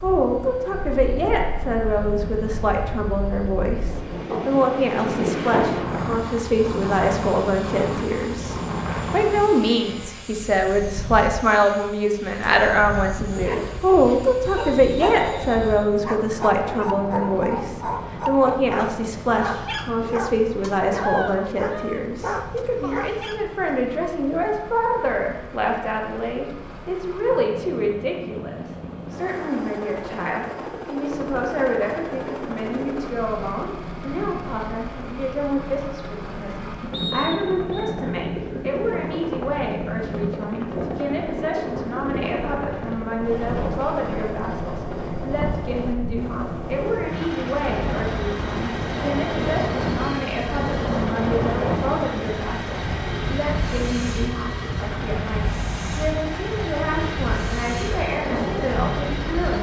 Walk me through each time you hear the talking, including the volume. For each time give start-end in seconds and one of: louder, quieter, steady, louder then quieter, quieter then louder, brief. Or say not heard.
0.0-59.5 quieter.